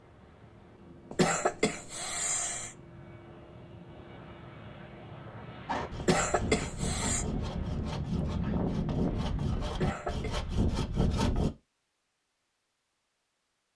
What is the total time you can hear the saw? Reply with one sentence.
You can hear the saw for 6 seconds altogether.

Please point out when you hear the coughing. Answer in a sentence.
You can hear the coughing from 1.1 to 2.8 s, from 6.0 to 7.2 s and from 9.7 to 10.3 s.